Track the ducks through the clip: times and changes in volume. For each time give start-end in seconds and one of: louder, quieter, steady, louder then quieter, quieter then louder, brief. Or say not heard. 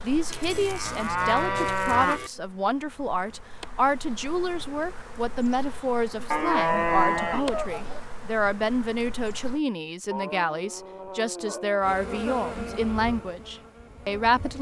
not heard.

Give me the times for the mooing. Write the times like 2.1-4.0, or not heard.
0.3-2.3, 6.3-8.0, 10.1-11.8.